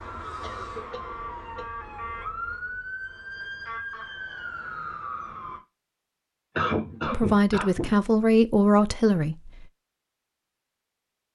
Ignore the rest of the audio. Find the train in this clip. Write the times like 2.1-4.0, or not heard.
not heard.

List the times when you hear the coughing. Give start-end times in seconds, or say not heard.
0.4-1.8, 6.5-8.0.